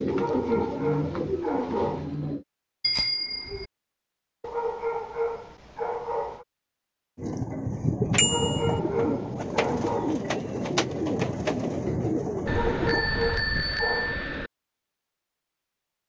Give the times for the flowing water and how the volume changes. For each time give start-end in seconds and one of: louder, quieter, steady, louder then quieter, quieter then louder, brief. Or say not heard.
not heard.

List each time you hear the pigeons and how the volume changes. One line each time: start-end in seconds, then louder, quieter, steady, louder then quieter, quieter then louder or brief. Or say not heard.
0.0-2.5 brief
7.2-13.1 steady.